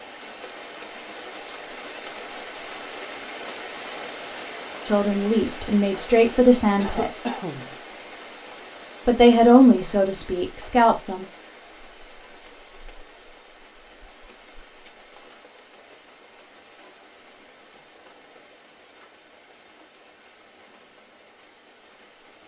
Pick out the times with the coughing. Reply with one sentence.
The coughing can be heard from 6.8 to 7.8 s.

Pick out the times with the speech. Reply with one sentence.
You can hear the speech from 4.8 to 7.1 s and from 9.1 to 11.2 s.